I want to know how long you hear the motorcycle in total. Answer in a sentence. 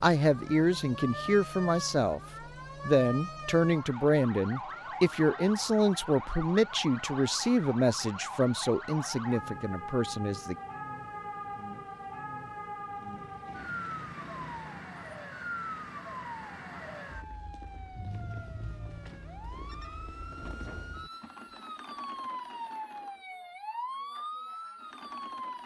You can hear the motorcycle for 2 seconds altogether.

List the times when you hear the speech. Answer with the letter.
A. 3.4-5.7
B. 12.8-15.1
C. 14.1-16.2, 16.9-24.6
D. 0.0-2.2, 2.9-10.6
D.